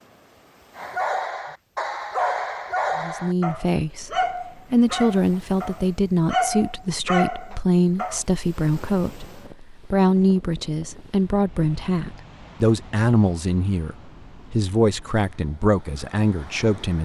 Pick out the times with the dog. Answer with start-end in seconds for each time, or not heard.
0.8-8.2.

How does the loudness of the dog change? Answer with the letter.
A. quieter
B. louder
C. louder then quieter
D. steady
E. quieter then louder
D.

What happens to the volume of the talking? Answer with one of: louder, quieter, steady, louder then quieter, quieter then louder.
steady.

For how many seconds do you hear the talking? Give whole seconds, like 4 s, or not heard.
14 s.